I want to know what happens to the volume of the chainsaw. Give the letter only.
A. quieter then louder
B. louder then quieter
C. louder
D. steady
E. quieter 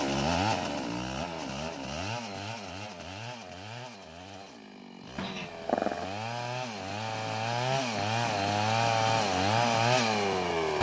A.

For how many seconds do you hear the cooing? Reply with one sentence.
You can't hear the cooing here.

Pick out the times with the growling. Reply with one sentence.
You can hear the growling from 5.2 to 6.1 s.